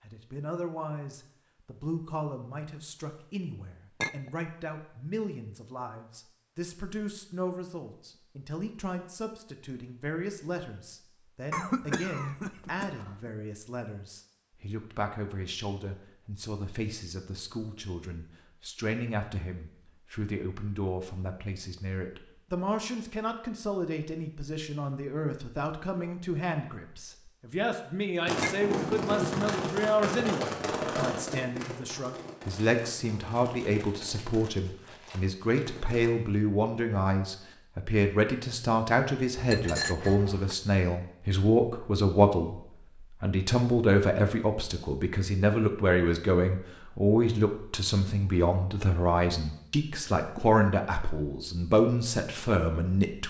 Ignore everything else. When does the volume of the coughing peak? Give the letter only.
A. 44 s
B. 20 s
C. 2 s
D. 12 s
D.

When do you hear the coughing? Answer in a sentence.
The coughing can be heard from 11.5 to 13.3 s.